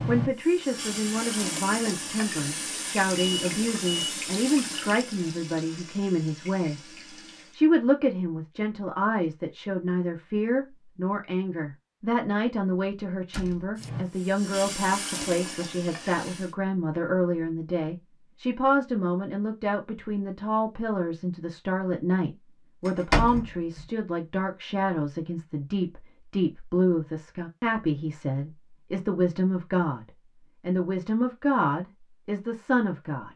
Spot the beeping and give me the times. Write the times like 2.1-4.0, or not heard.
3.1-4.1.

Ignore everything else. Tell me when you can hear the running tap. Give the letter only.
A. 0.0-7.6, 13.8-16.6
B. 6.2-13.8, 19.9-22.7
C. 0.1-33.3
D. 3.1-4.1
A.